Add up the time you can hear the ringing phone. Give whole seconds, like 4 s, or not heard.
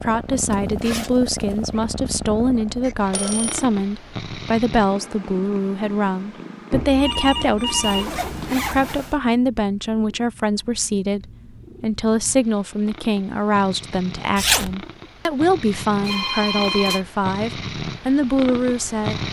4 s.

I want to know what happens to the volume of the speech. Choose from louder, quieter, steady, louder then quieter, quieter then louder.
steady.